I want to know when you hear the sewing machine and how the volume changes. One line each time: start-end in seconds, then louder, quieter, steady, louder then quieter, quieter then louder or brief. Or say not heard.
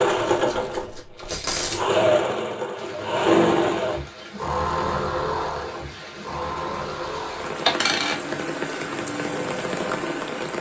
0.0-10.5 quieter.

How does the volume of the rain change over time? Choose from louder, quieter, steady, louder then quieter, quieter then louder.
louder.